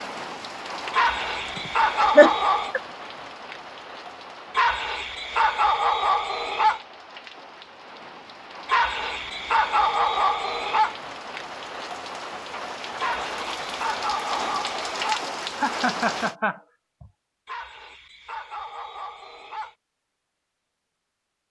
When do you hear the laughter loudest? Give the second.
2 s.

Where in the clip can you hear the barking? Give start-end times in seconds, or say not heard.
0.9-2.8, 4.5-6.8, 8.7-10.9, 12.9-15.2, 17.4-19.8.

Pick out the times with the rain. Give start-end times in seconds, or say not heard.
0.0-16.4.